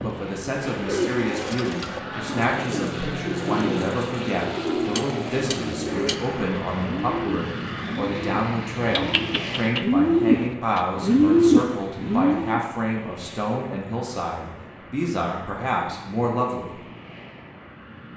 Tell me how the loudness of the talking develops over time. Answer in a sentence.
The volume of the talking stays about the same.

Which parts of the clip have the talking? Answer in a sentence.
The talking can be heard from 0.0 to 16.9 s.